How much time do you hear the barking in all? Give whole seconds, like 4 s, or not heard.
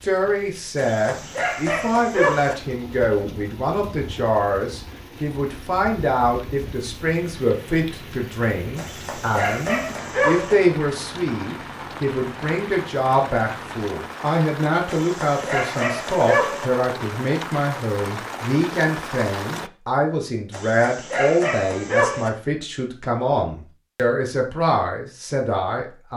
7 s.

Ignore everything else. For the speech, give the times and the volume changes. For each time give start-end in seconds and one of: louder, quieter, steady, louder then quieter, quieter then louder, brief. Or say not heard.
0.0-26.1 steady.